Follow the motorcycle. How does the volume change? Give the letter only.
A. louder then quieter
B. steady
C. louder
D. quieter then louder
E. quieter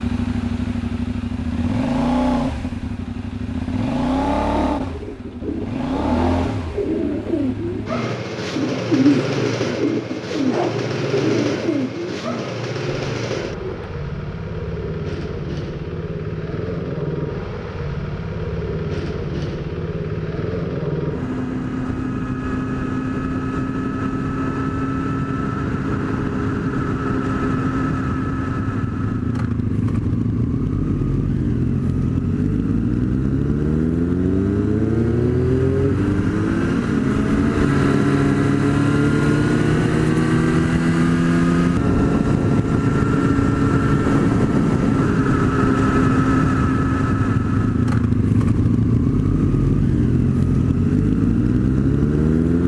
C.